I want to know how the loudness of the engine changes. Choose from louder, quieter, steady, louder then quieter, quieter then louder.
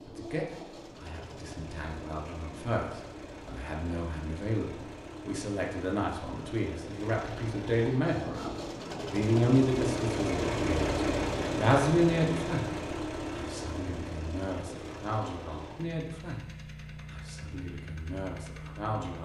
louder then quieter.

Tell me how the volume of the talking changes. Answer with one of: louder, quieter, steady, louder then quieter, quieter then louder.
louder then quieter.